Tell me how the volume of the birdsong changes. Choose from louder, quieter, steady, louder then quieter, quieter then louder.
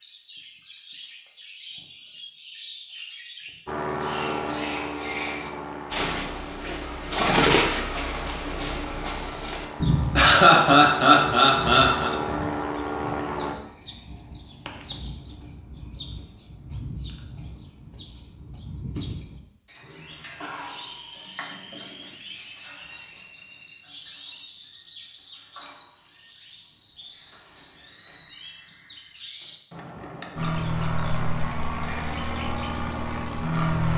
louder then quieter.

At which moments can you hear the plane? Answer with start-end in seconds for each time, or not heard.
3.6-13.6, 30.4-33.9.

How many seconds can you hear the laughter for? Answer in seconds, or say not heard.
2 s.